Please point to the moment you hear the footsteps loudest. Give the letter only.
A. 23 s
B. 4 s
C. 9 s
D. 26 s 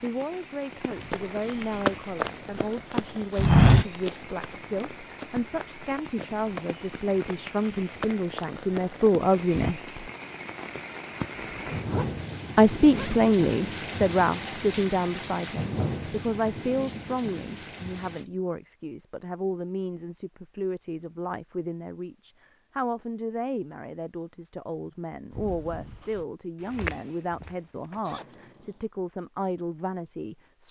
B.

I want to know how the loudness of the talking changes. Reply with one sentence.
The volume of the talking goes up, then down.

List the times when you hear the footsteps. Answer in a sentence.
You can hear the footsteps from 0.9 to 9.8 s and from 25.3 to 28.0 s.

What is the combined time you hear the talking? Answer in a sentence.
You can hear the talking for 28 seconds altogether.